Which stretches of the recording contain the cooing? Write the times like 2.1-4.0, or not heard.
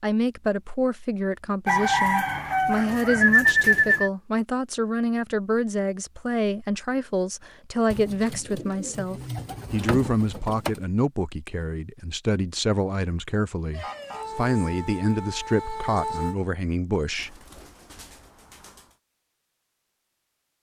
1.6-4.1, 7.9-10.8, 17.1-18.9.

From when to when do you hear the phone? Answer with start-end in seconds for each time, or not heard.
not heard.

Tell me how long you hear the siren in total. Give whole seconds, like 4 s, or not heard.
3 s.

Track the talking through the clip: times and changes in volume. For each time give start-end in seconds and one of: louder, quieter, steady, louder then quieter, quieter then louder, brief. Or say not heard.
0.0-17.4 steady.